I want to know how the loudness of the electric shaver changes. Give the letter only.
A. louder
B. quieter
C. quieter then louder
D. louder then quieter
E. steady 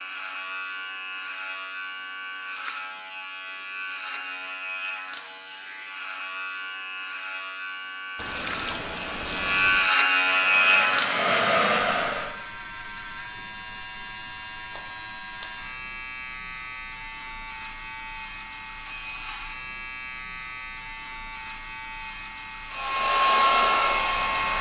D.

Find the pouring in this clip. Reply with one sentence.
The pouring can be heard from 8.2 to 9.9 s.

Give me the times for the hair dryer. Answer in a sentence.
The hair dryer can be heard from 10.2 to 12.3 s and from 22.7 to 24.5 s.